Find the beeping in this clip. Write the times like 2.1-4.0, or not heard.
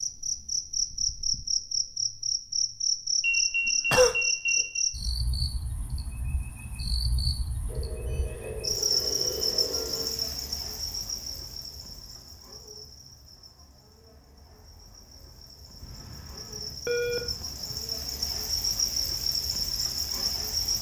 3.2-4.8, 7.7-10.2, 15.8-17.8.